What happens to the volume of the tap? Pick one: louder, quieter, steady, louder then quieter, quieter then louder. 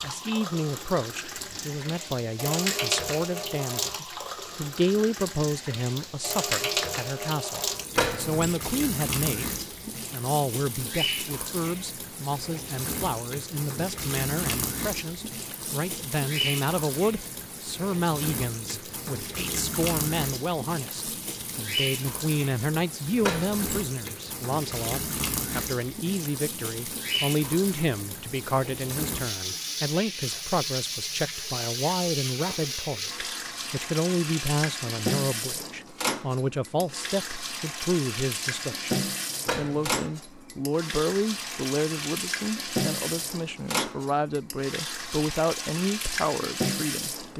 steady.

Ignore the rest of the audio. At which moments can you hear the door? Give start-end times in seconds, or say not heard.
8.0-8.6, 23.2-23.9, 39.5-40.0.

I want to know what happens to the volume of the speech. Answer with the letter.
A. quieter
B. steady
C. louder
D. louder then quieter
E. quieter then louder
B.